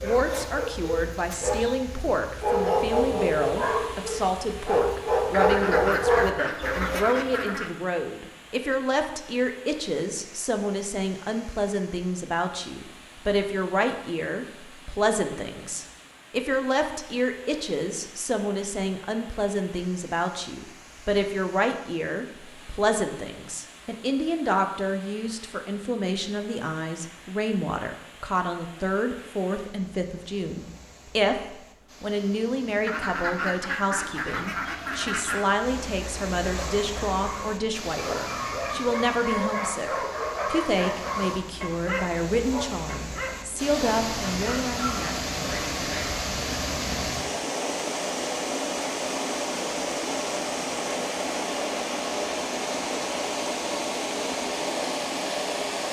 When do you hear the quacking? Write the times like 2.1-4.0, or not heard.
5.3-7.7, 32.9-35.5.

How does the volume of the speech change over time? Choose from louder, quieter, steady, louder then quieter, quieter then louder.
steady.